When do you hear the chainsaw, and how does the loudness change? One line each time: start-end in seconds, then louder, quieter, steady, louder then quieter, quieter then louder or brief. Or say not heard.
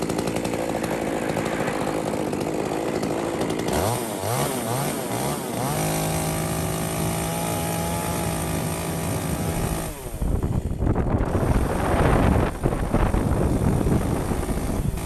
0.0-15.0 quieter.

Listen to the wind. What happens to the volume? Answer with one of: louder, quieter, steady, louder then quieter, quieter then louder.
louder.